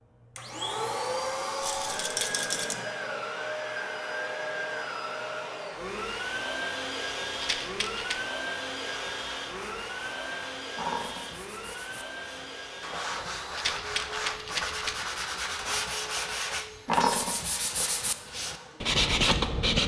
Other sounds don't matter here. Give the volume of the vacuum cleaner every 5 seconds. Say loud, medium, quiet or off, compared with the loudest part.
loud, loud, medium, quiet.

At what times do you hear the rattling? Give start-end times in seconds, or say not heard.
1.6-2.8, 7.4-8.2, 13.6-15.1.